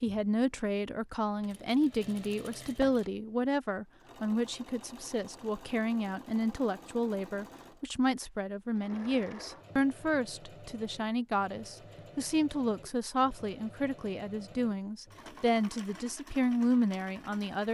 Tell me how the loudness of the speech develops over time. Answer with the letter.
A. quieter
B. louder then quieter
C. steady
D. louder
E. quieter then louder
C.